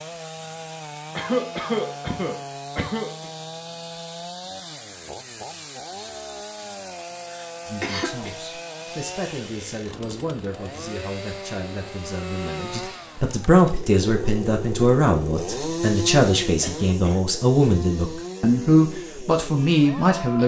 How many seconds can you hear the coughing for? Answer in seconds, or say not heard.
4 s.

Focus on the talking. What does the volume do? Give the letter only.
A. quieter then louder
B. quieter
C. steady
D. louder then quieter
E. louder
E.